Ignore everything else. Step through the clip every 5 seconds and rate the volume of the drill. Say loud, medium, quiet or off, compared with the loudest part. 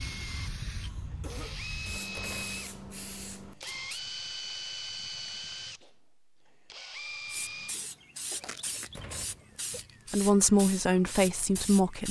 loud, loud, off.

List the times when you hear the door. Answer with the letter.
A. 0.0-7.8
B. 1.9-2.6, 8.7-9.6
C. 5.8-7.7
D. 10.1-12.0
B.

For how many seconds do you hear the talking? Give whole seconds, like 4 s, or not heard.
2 s.